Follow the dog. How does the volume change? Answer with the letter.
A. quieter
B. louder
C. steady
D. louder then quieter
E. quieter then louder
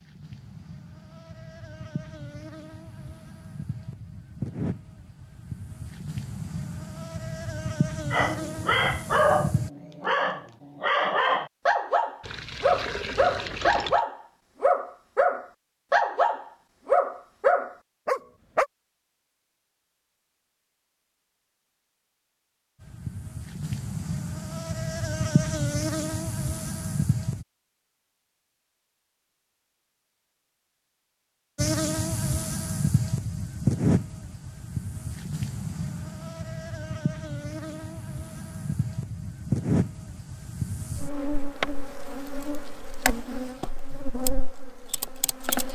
C.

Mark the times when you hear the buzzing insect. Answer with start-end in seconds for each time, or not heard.
0.0-9.7, 22.8-27.4, 31.6-45.6.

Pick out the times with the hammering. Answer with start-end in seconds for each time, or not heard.
not heard.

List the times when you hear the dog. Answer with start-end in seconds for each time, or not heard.
8.1-18.6.